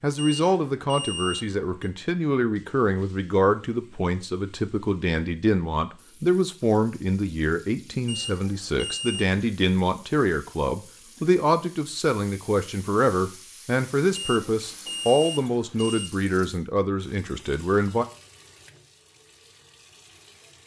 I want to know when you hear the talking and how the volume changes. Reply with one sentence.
You can hear the talking from 0.0 to 18.1 s, at a steady volume.